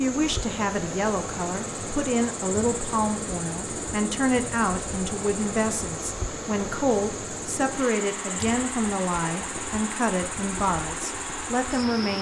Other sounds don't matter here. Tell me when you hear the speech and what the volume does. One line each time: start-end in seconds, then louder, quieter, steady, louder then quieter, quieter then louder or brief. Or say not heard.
0.0-12.1 steady.